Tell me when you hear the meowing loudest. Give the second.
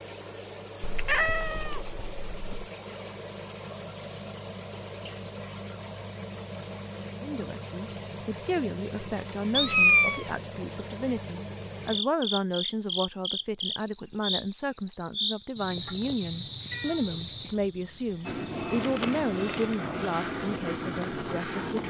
10 s.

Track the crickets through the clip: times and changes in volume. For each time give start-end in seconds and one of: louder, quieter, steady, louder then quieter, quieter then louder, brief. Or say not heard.
0.0-21.8 steady.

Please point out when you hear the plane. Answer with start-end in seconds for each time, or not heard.
18.2-21.8.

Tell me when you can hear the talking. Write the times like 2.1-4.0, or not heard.
7.2-21.8.